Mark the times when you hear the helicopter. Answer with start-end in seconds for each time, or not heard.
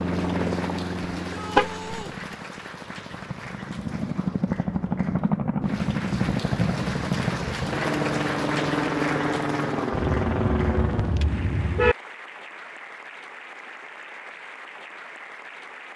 0.0-11.3.